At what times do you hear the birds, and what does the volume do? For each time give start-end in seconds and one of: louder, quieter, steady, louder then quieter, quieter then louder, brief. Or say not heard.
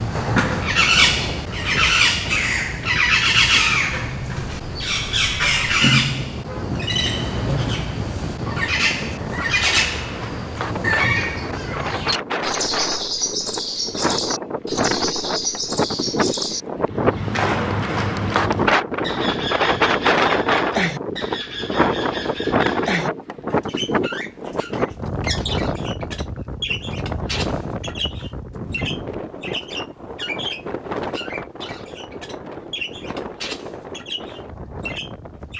0.0-35.5 quieter.